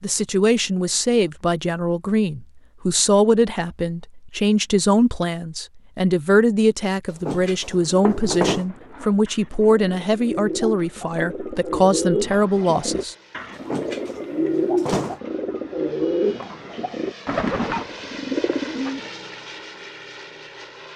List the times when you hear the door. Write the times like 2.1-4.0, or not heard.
7.1-8.7, 13.6-15.2.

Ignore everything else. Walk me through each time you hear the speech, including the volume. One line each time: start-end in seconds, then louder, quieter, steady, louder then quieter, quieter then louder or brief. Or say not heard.
0.0-13.2 steady.